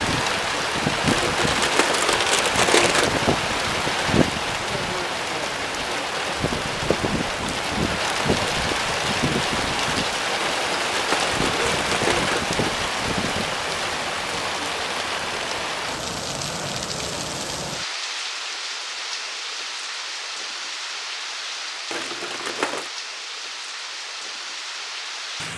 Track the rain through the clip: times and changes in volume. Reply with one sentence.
The rain can be heard from 0.0 to 25.5 s, getting quieter.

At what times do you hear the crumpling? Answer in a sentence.
The crumpling can be heard from 1.1 to 3.1 s, from 10.4 to 12.4 s and from 21.9 to 22.9 s.